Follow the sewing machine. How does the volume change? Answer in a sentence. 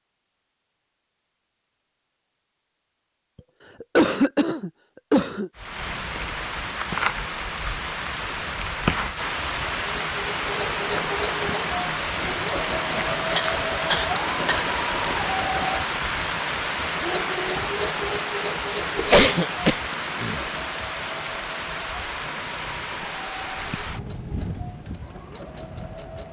The volume of the sewing machine goes down.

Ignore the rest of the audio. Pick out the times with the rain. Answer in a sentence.
The rain can be heard from 5.5 to 26.2 s.